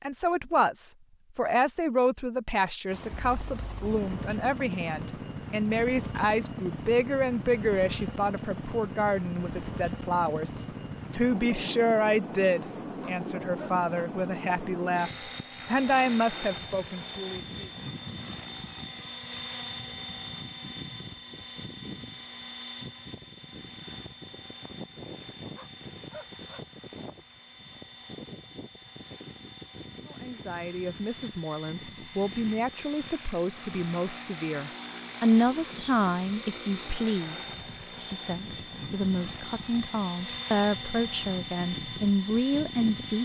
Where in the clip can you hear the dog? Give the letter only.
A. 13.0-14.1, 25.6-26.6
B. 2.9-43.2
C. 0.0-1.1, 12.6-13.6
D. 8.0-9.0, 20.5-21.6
A.